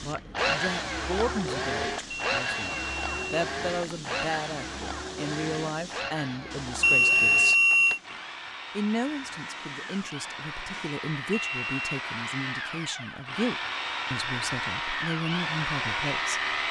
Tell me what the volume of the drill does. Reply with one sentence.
The loudness of the drill goes down, then up.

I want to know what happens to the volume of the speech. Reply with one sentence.
The volume of the speech stays about the same.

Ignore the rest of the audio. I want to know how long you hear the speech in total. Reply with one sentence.
The speech can be heard for 15 seconds in total.